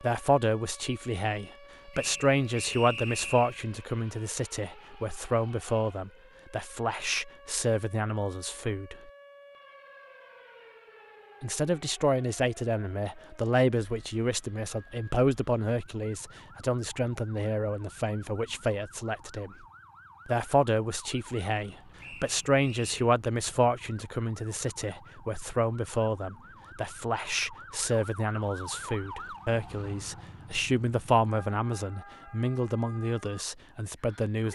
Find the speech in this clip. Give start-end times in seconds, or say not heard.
0.0-8.9, 11.4-19.6, 20.2-34.4.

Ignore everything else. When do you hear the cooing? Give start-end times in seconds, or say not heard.
not heard.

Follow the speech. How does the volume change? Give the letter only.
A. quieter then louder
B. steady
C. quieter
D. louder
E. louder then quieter
B.